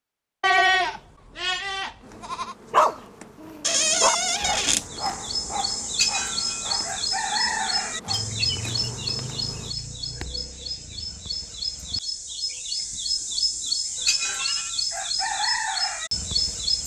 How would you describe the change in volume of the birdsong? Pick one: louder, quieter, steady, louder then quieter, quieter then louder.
quieter then louder.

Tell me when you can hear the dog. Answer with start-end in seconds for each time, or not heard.
2.7-8.3.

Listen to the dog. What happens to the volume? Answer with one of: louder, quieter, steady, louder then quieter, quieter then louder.
louder then quieter.